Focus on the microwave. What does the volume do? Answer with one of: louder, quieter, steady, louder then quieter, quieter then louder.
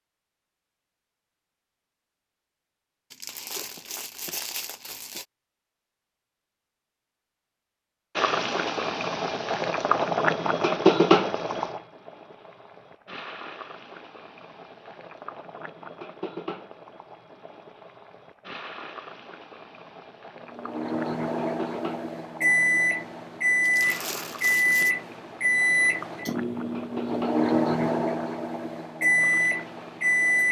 steady.